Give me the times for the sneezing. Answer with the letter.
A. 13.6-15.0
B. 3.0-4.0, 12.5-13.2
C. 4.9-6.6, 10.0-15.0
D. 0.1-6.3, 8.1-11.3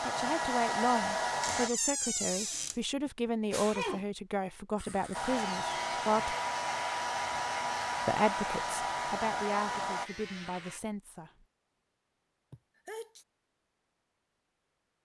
B.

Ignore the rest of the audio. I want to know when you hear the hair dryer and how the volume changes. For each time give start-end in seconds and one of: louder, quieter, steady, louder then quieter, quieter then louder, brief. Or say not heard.
0.0-1.7 brief
5.1-10.1 steady.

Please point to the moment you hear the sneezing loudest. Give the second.
4 s.